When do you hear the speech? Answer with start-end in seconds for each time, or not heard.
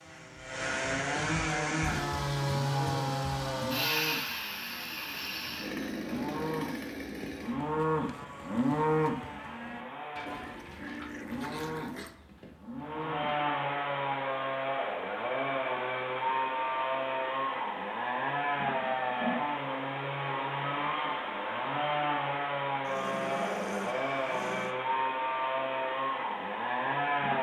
not heard.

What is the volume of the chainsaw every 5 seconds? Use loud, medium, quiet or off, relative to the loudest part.
loud, medium, loud, loud, loud, loud.